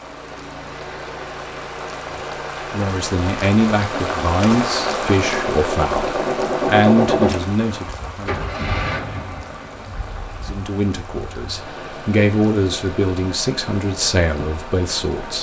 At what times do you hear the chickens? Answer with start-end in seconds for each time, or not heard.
not heard.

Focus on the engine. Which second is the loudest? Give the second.
7 s.